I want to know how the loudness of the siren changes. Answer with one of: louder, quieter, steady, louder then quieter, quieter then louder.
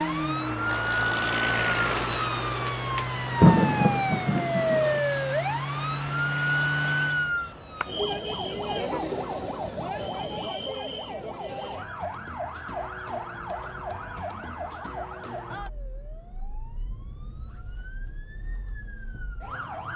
quieter.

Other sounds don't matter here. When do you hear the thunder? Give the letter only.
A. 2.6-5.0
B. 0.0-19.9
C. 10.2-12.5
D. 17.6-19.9
A.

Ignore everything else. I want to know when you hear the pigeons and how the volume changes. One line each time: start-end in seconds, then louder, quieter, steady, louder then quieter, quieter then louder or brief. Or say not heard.
not heard.